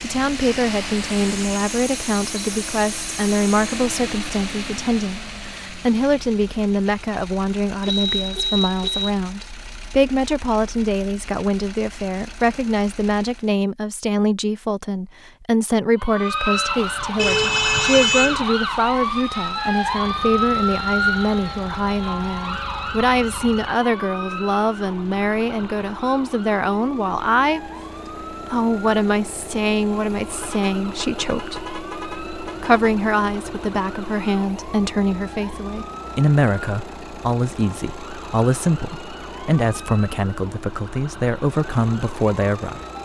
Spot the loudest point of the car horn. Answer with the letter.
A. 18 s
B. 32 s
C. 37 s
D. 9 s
A.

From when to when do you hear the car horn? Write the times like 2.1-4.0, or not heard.
7.8-9.1, 17.1-18.4, 30.3-32.9.